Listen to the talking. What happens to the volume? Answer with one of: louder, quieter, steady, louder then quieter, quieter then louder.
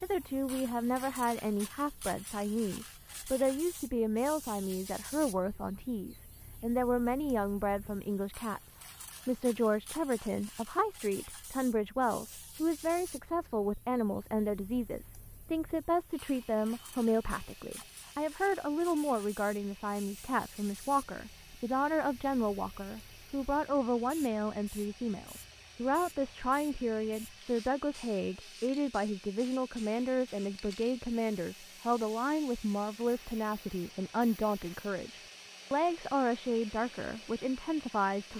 steady.